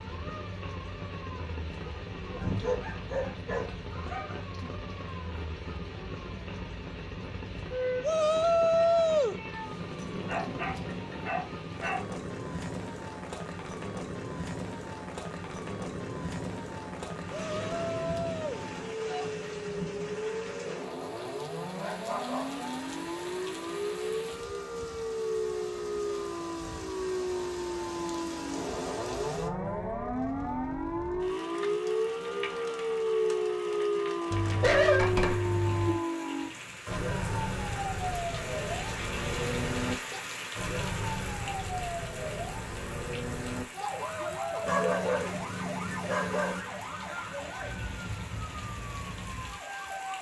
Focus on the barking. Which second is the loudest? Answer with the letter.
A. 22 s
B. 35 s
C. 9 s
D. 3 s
B.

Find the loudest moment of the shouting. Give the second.
9 s.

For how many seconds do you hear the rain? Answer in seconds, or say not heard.
50 s.